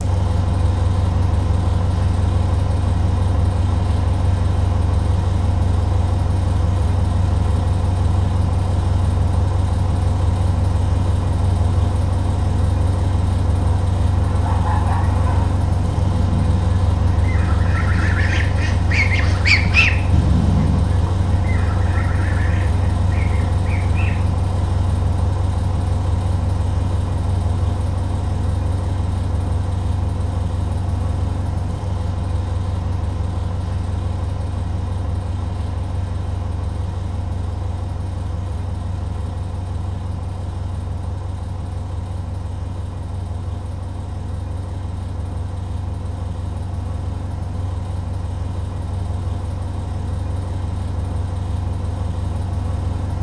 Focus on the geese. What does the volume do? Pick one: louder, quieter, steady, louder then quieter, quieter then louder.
louder then quieter.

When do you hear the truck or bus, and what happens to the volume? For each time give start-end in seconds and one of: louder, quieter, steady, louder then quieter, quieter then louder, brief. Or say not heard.
0.0-53.1 quieter.